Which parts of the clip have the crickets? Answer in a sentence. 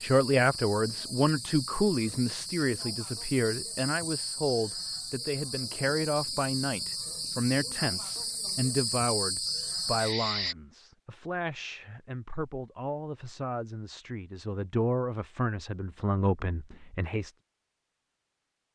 You can hear the crickets from 0.0 to 10.6 s.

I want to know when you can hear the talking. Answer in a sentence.
The talking can be heard from 0.0 to 17.3 s.